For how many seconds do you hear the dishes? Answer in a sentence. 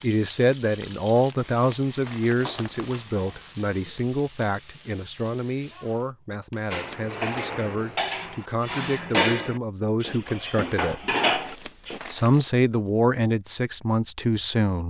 You can hear the dishes for 5 seconds altogether.